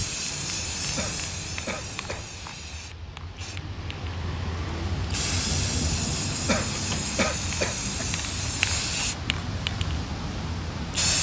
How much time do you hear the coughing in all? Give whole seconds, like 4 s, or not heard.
3 s.